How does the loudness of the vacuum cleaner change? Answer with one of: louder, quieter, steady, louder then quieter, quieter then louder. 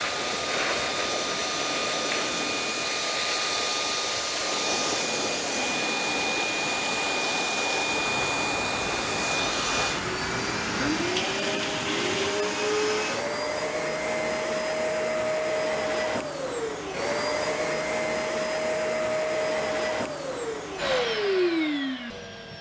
steady.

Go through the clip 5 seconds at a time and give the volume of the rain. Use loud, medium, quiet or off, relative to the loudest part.
loud, loud, loud, off, off.